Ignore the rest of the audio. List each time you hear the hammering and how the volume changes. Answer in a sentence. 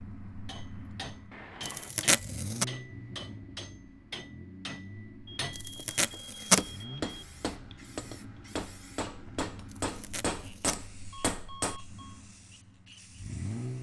The hammering can be heard from 0.5 to 11.8 s, getting louder.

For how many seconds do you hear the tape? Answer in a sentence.
The tape can be heard for 3 seconds in total.